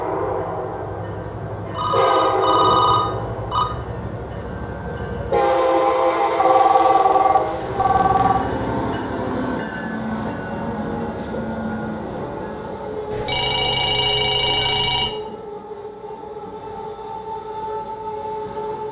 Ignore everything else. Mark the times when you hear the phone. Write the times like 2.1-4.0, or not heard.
1.6-3.6, 6.3-8.5, 13.1-15.1.